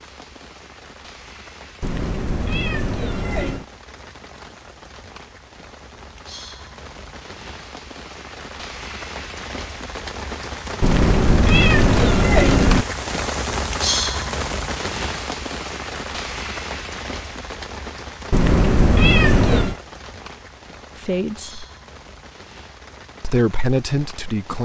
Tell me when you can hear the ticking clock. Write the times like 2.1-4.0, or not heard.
not heard.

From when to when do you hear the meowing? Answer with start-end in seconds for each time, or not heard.
1.8-3.6, 10.8-12.8, 18.3-19.8.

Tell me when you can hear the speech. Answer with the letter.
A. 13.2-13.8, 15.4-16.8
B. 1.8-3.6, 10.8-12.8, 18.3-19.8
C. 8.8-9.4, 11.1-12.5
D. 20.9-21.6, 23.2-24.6
D.